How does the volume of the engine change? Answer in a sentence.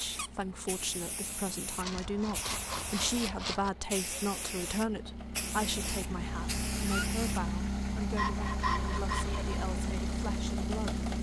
The volume of the engine goes up.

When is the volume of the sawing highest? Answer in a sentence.
The volume of the sawing peaks at 9 seconds.